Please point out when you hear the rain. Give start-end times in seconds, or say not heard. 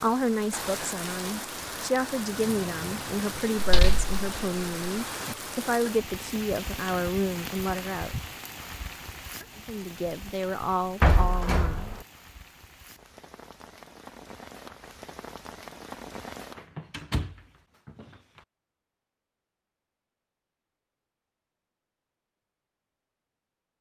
0.0-16.7.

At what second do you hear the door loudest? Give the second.
11 s.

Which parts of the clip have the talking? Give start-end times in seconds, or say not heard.
0.0-8.2, 9.6-12.0.